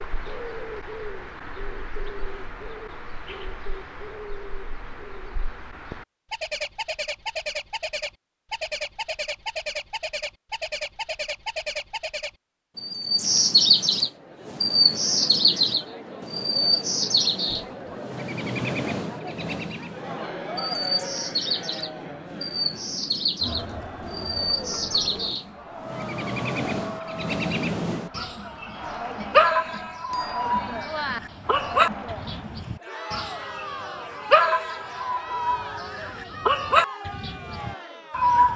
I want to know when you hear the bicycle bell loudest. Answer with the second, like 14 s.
31 s.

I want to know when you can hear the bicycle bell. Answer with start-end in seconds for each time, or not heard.
29.2-31.2.